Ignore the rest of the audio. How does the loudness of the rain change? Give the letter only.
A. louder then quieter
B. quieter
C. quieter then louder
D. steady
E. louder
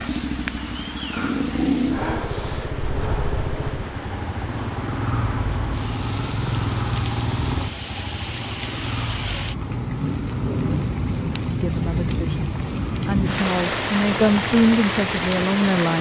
E.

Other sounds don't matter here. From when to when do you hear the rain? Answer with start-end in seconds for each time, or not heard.
0.0-15.9.